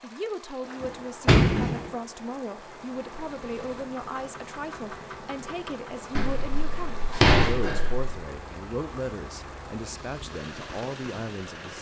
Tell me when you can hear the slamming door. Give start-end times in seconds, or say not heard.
0.8-1.9, 6.2-8.2.